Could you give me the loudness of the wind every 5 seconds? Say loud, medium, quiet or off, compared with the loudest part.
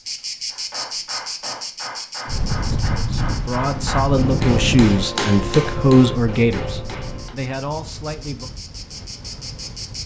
loud, quiet.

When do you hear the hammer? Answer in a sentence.
The hammer can be heard from 0.5 to 7.3 s.